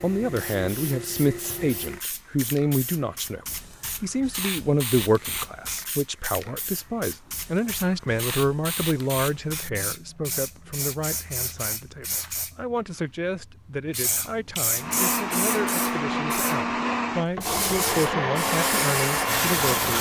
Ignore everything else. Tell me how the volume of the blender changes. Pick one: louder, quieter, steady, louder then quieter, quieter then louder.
steady.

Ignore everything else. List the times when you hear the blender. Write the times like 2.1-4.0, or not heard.
14.8-19.9.